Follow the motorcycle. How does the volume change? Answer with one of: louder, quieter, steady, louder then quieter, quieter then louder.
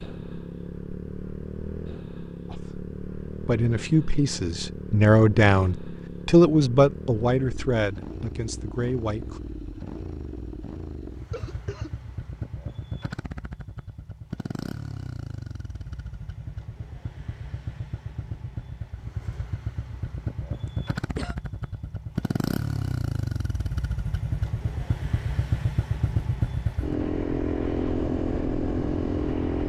louder.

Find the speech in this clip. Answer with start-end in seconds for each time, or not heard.
2.5-9.4.